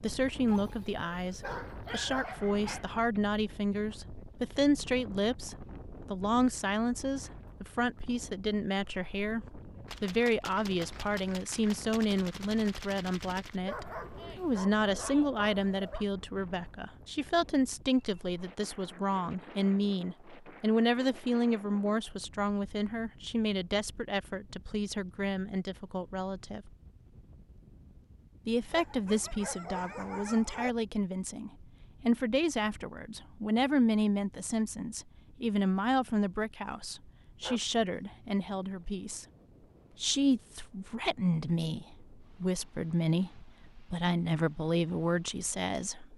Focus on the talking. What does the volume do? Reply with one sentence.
The loudness of the talking stays about the same.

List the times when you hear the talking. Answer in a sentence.
You can hear the talking from 0.0 to 26.7 s, from 28.4 to 39.2 s and from 40.0 to 46.1 s.